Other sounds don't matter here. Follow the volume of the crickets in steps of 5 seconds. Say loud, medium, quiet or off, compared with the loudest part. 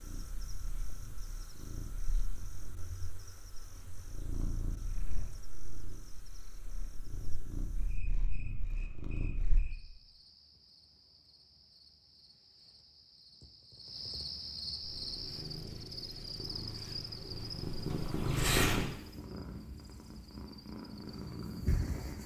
quiet, quiet, loud, loud, quiet.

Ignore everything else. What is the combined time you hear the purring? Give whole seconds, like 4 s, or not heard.
17 s.